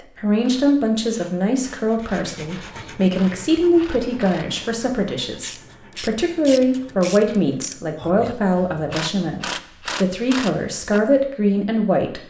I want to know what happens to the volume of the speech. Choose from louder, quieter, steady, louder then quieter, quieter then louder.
steady.